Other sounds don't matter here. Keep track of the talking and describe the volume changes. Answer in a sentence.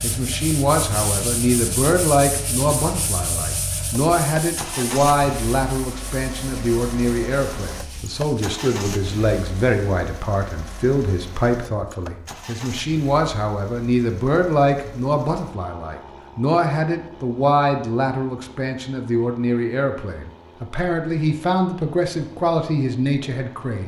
The volume of the talking stays about the same.